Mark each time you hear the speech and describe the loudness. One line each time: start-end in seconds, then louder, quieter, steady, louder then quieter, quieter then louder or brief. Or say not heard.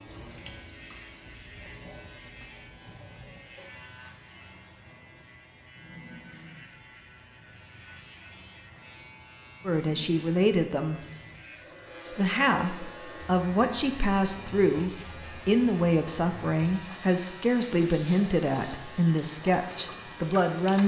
9.7-11.0 brief
12.2-20.8 steady.